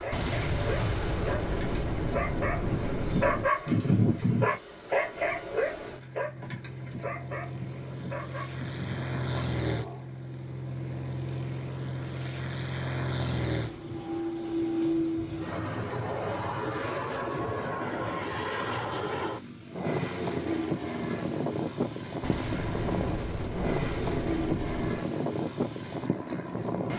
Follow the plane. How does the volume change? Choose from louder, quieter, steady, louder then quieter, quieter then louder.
louder.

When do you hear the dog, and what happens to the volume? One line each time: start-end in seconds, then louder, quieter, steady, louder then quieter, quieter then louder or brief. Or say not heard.
0.0-10.1 louder then quieter.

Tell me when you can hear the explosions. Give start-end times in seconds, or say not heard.
0.1-3.5, 22.2-25.1.